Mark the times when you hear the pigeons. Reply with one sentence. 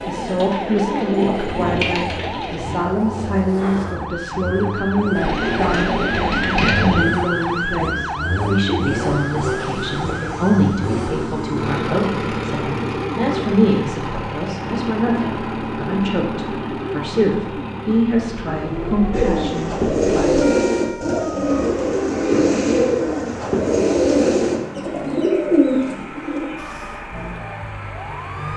You can hear the pigeons from 0.0 to 2.9 s, from 5.2 to 7.0 s and from 19.1 to 26.6 s.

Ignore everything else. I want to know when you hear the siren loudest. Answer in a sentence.
The loudest moment of the siren is at 7 seconds.